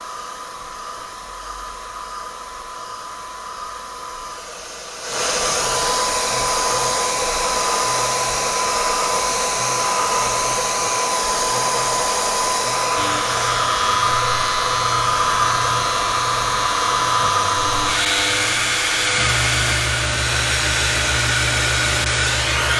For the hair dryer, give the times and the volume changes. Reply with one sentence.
You can hear the hair dryer from 0.0 to 22.7 s, getting louder.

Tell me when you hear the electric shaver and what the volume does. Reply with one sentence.
You can hear the electric shaver from 12.9 to 22.7 s, at a steady volume.